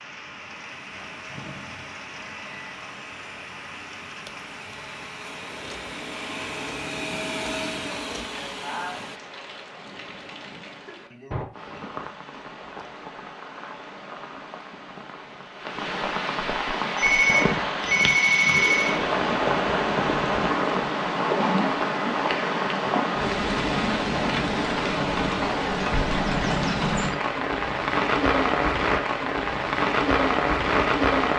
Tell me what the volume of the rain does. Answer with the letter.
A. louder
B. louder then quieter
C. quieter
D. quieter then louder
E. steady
A.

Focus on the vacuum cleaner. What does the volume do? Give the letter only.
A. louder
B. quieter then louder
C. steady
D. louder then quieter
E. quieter
A.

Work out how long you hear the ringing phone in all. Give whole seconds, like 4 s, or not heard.
2 s.